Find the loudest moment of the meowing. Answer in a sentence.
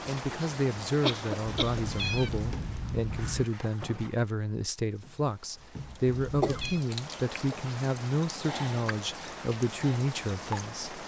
The loudest moment of the meowing is at 2 seconds.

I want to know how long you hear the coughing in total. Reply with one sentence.
You can hear the coughing for 2 seconds altogether.